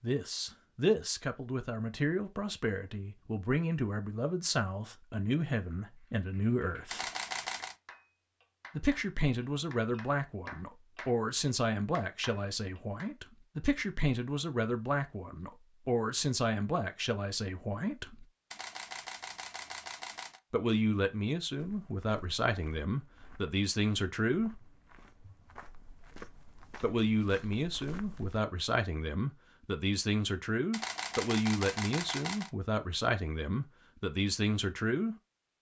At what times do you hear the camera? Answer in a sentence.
The camera can be heard from 6.9 to 7.8 s, from 18.5 to 20.4 s and from 30.7 to 32.5 s.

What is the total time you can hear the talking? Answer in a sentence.
You can hear the talking for 29 seconds altogether.